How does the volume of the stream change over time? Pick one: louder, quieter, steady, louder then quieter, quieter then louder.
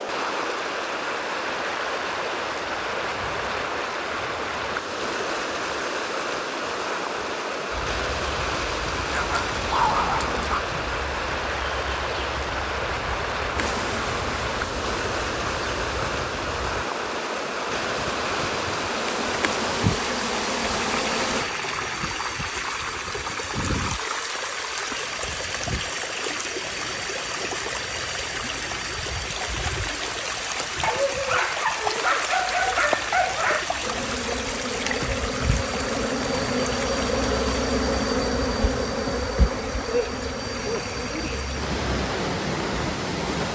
steady.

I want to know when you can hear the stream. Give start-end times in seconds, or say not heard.
0.0-43.5.